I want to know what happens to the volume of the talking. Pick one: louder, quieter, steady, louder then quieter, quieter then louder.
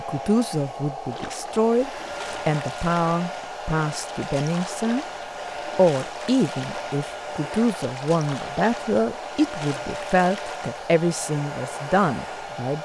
steady.